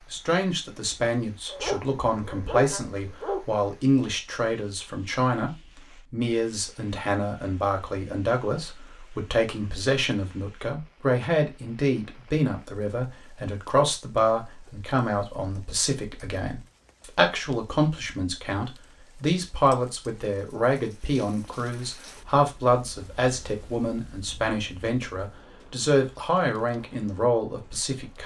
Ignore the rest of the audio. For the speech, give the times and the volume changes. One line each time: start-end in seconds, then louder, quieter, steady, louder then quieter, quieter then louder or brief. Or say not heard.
0.1-28.2 steady.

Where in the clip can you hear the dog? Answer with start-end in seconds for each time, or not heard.
1.4-3.5.